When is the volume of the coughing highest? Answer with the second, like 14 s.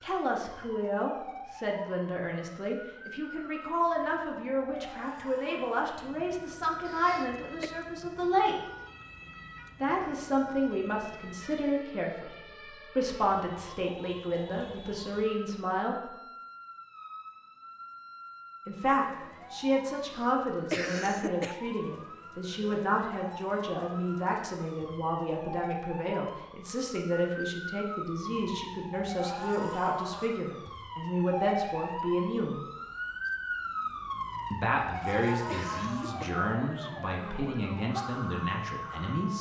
21 s.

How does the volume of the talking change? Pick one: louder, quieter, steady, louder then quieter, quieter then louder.
steady.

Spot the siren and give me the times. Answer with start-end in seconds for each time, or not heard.
0.0-39.3.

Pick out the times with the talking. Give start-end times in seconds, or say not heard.
0.0-8.6, 9.8-16.1, 18.6-32.6, 34.5-39.3.